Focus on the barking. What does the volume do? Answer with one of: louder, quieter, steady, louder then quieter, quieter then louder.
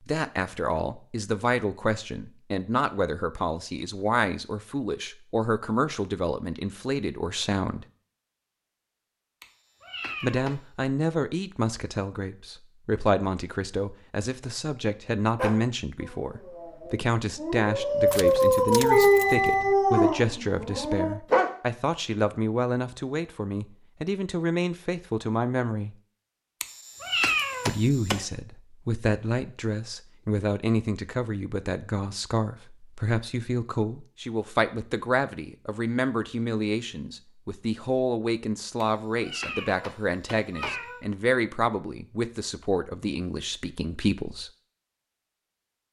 louder then quieter.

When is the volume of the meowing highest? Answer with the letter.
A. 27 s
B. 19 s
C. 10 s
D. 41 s
A.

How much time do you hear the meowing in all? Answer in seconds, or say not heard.
5 s.